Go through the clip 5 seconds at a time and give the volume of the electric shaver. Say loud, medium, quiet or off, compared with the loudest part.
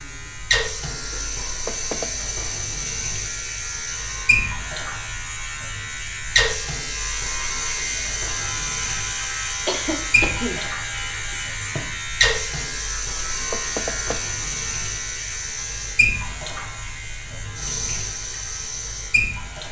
medium, loud, loud, medium.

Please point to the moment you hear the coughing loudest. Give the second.
10 s.